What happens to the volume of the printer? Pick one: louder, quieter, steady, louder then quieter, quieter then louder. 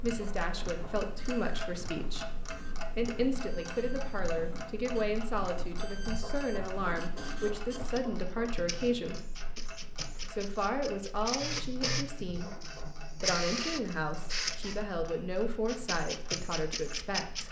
louder.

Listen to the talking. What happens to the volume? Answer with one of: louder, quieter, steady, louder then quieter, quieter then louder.
steady.